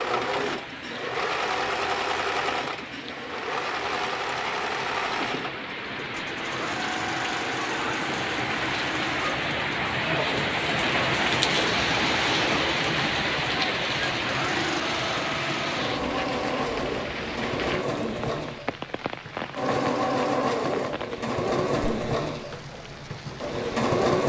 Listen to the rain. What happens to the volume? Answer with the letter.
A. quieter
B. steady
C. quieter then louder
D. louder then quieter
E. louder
D.